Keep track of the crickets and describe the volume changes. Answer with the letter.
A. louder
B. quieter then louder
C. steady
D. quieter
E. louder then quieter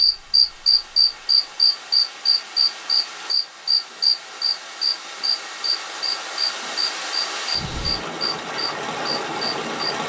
D.